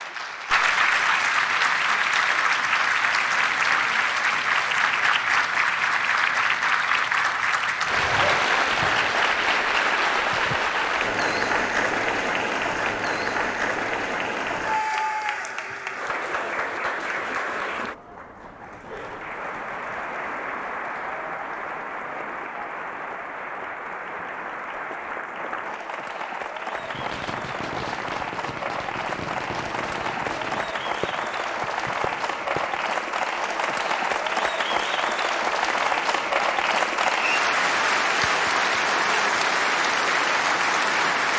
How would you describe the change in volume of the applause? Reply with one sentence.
The volume of the applause goes down, then up.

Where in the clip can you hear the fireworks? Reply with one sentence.
You can hear the fireworks from 26.8 to 32.8 s.